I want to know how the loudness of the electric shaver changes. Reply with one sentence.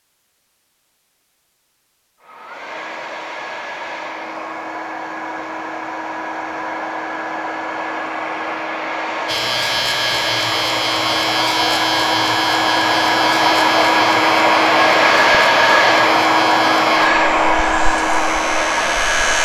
The loudness of the electric shaver goes down.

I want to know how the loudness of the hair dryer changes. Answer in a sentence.
The loudness of the hair dryer goes up.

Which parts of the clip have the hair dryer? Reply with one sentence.
You can hear the hair dryer from 2.2 to 19.4 s.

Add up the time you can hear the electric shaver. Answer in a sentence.
You can hear the electric shaver for 10 seconds altogether.